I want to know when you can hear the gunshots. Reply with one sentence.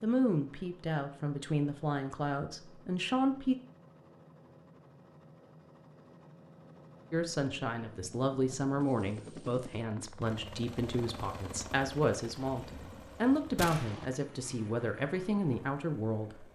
You can hear the gunshots from 13.6 to 14.1 s.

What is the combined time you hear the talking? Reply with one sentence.
The talking can be heard for 13 seconds in total.